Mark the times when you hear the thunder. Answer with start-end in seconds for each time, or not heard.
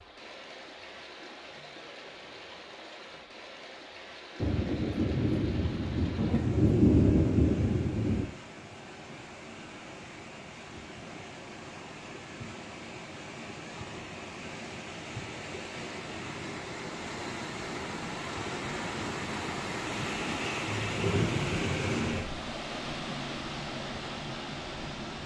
4.4-8.2, 20.6-22.2.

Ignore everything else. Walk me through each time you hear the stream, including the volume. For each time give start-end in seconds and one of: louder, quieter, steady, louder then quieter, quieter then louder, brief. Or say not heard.
0.0-25.2 louder.